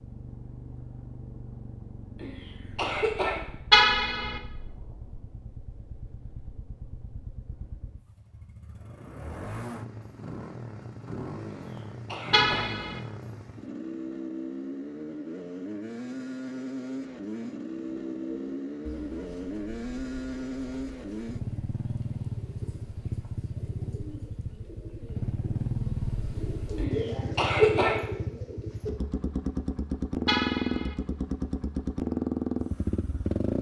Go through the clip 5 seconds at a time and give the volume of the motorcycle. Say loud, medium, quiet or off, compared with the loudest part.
quiet, quiet, medium, medium, medium, medium, loud.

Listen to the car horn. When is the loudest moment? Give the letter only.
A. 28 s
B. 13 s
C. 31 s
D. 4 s
D.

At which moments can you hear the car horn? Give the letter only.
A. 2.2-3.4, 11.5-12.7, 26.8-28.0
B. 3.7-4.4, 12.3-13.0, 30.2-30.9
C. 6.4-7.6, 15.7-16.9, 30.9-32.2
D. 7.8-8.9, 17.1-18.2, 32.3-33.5
B.